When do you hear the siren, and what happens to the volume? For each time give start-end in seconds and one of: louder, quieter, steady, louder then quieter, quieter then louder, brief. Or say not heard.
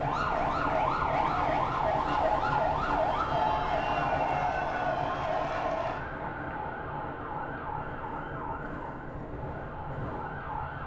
0.0-10.8 quieter.